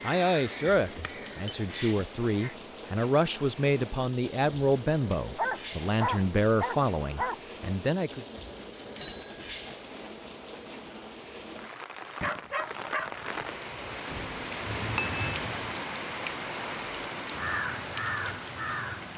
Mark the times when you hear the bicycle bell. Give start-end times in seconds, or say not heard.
0.9-1.6, 8.9-9.7, 14.1-15.2.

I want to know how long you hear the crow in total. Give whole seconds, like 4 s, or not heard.
4 s.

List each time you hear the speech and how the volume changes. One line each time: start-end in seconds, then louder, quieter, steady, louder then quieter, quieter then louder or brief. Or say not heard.
0.0-8.2 steady.